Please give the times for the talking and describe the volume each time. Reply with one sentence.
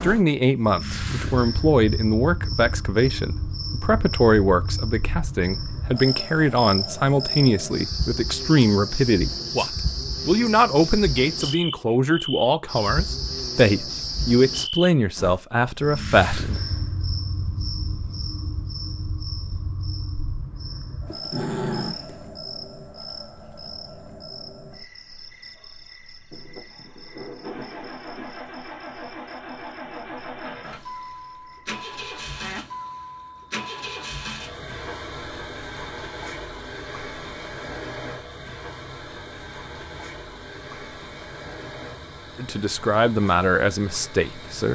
You can hear the talking from 0.0 to 16.6 s, at a steady volume; and briefly from 42.4 to 44.7 s.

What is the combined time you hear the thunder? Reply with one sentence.
The thunder can be heard for 2 seconds in total.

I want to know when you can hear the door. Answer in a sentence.
You can't hear the door here.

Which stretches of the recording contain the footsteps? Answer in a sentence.
You can't hear the footsteps here.